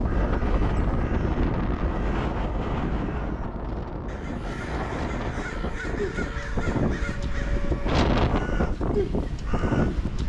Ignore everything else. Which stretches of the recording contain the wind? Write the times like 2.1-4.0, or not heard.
0.0-10.2.